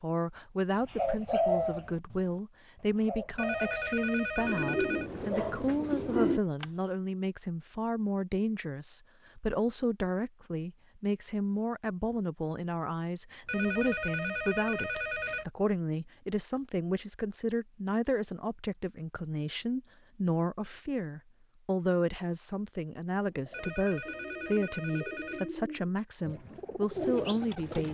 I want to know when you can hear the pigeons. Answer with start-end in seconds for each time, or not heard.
0.8-2.2, 2.8-6.7, 23.4-27.9.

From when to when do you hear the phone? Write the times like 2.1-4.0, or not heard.
3.4-5.1, 13.4-15.4, 23.5-25.5.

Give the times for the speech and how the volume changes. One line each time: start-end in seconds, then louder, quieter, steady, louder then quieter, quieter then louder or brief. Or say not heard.
0.0-27.9 steady.